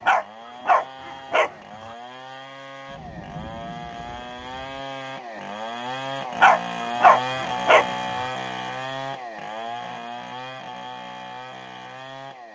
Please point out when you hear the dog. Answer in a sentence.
The dog can be heard from 0.0 to 1.6 s and from 6.3 to 7.9 s.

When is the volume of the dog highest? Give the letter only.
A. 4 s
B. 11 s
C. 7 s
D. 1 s
C.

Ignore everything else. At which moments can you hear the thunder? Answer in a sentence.
You can hear the thunder from 2.9 to 4.8 s.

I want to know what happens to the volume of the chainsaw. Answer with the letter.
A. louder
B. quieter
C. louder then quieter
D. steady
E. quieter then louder
C.